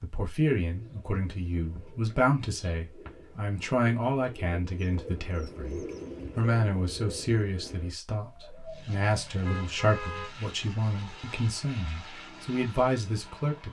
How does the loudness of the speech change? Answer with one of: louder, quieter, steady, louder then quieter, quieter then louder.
steady.